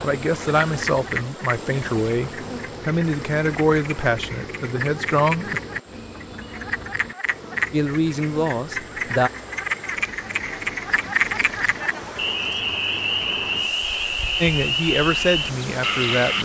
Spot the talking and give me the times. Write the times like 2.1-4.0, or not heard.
0.0-5.6, 7.7-9.3, 14.4-16.4.